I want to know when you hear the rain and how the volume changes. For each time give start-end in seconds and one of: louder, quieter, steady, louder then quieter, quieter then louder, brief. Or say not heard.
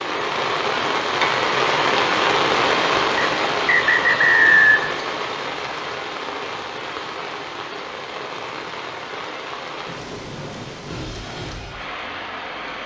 0.0-12.8 quieter.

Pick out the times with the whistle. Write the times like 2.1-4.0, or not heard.
3.1-4.9.